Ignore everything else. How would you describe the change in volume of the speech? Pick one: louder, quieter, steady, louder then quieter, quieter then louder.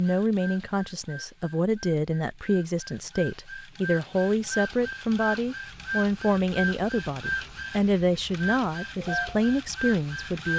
steady.